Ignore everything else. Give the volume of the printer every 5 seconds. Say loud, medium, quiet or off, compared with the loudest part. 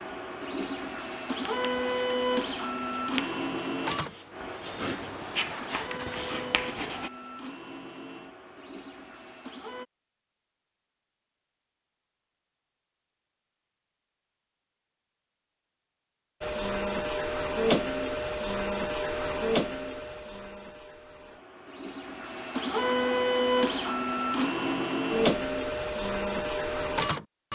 loud, quiet, off, loud, loud, loud.